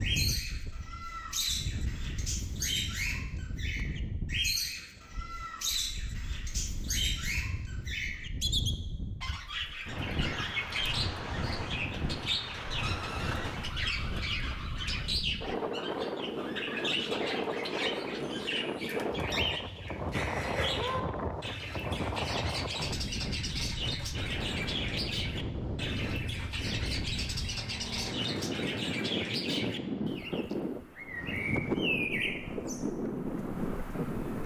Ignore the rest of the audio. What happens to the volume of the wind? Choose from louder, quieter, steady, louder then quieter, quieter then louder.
louder.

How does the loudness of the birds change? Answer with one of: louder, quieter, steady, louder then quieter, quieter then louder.
steady.